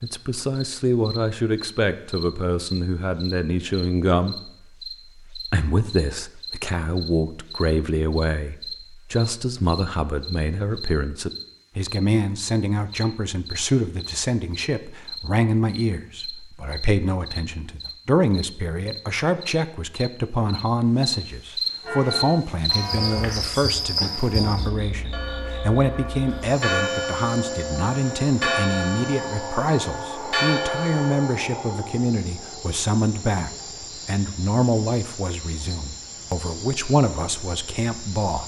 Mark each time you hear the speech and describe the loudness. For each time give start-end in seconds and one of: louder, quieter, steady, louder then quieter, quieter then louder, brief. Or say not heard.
0.0-38.4 steady.